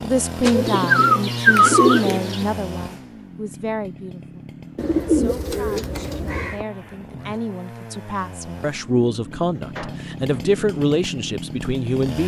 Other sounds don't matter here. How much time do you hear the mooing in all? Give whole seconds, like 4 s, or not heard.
not heard.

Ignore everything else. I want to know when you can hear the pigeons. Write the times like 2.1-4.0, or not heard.
0.4-2.5, 4.8-6.6, 8.7-10.6.